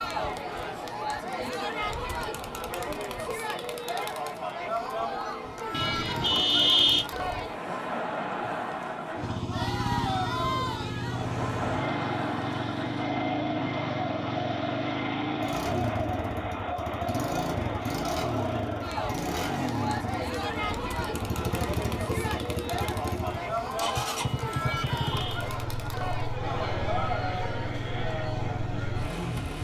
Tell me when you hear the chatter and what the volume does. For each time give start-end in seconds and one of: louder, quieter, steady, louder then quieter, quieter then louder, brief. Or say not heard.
0.0-29.5 steady.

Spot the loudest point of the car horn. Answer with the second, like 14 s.
7 s.